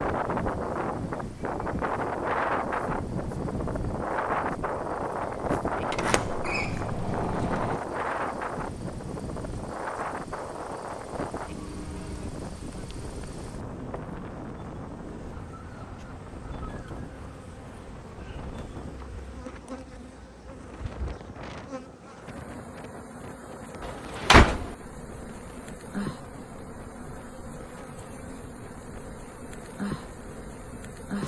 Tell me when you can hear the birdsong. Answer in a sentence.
The birdsong can't be heard in this clip.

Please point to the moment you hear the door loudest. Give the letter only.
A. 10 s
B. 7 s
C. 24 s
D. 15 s
C.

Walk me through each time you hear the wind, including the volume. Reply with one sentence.
The wind can be heard from 0.0 to 31.2 s, getting quieter.